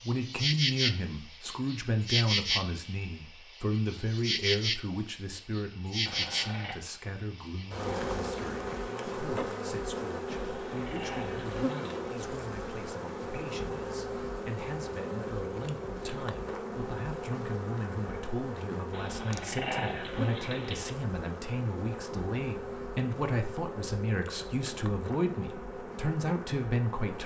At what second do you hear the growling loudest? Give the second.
20 s.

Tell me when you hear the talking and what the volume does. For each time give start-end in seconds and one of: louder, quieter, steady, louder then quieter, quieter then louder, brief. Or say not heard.
0.0-27.2 quieter then louder.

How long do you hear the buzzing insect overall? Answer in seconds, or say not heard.
27 s.